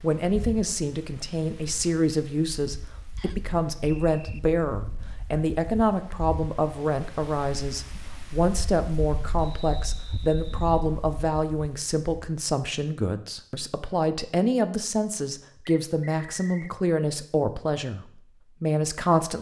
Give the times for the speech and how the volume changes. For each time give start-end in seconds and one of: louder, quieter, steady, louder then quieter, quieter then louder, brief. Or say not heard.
0.0-19.3 steady.